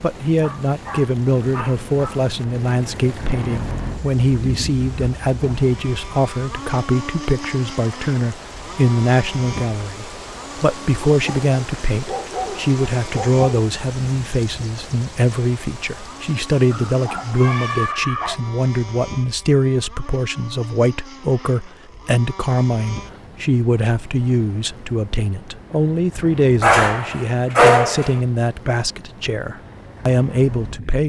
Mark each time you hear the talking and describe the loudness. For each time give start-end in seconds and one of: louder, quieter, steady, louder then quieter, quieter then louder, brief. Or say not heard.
0.0-31.0 steady.